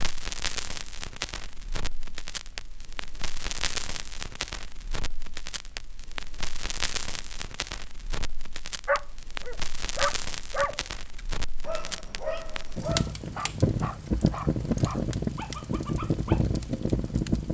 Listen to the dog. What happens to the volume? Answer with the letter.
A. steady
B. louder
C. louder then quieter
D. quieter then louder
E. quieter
E.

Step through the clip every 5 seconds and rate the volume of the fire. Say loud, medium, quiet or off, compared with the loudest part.
medium, medium, loud, loud.